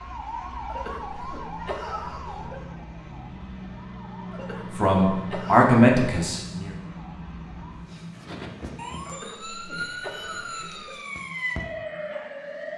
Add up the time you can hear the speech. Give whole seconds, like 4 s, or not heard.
2 s.